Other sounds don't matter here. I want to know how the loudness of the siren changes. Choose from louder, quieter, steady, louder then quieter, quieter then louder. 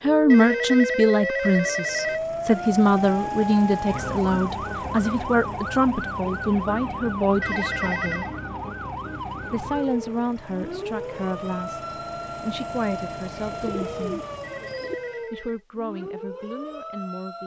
quieter.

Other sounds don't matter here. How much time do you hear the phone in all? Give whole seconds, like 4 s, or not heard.
4 s.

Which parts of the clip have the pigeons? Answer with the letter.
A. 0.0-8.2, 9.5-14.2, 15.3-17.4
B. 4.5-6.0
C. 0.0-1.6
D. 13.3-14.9
D.